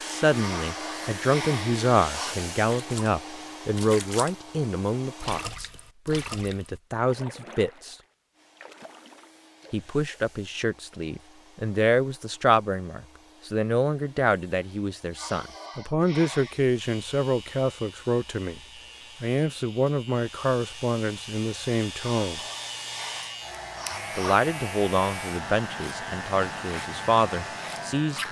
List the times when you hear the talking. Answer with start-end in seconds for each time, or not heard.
0.1-8.0, 9.7-18.6, 19.2-22.4, 24.1-28.2.